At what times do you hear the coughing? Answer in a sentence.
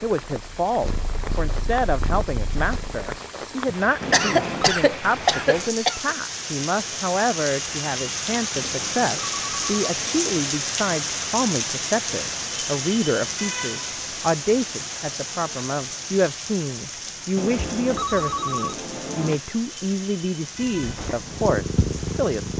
The coughing can be heard from 3.6 to 6.2 s.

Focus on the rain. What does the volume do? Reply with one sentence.
The volume of the rain goes up, then down.